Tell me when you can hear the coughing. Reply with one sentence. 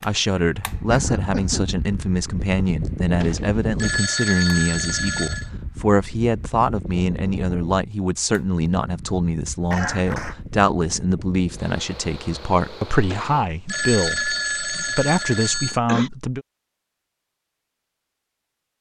The coughing can be heard from 0.8 to 1.8 s, from 9.7 to 10.3 s and from 14.7 to 16.1 s.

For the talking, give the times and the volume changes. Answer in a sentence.
The talking can be heard from 0.0 to 16.4 s, at a steady volume.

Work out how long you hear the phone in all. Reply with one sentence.
You can hear the phone for 5 seconds altogether.